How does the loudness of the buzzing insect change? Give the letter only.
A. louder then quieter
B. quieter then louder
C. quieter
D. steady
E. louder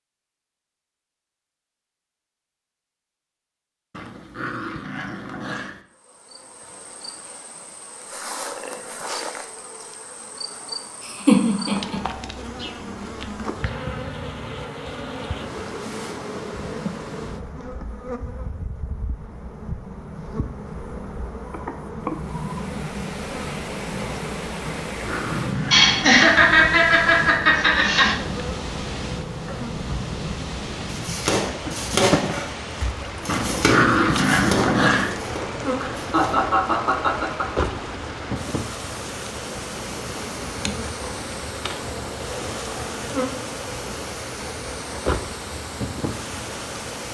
D.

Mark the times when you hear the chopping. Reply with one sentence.
You can hear the chopping from 30.9 to 36.5 s.